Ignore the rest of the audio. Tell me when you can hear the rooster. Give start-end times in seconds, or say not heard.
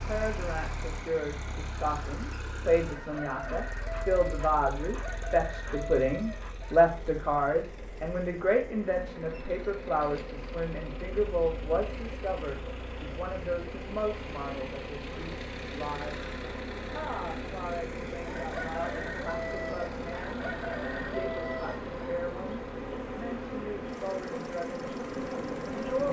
2.9-6.9, 18.2-22.2.